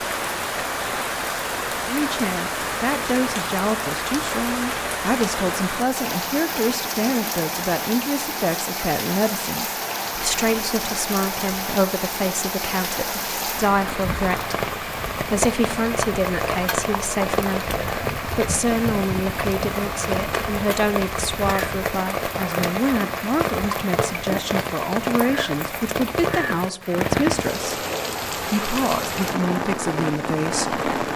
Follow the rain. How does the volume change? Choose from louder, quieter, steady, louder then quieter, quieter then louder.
steady.